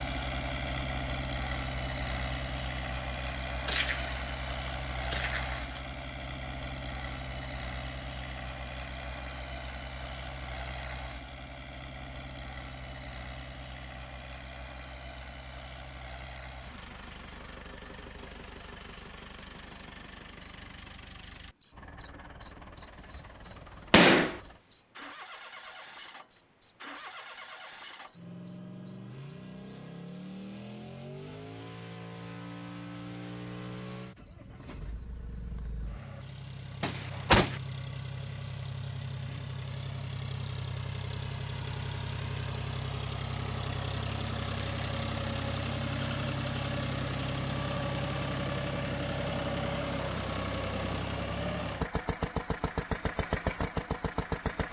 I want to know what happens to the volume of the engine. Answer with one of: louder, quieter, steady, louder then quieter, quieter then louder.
quieter then louder.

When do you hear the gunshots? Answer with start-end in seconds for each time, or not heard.
3.6-5.8, 23.9-24.4, 36.8-37.6.